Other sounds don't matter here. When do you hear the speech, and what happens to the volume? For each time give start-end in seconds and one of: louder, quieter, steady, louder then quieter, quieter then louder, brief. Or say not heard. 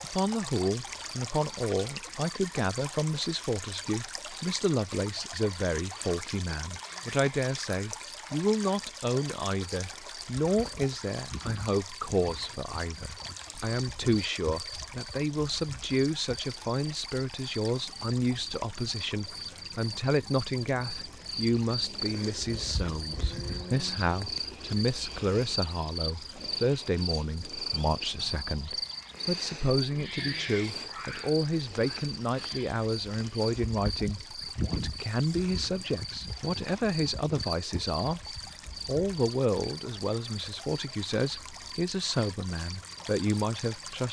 0.0-44.0 steady.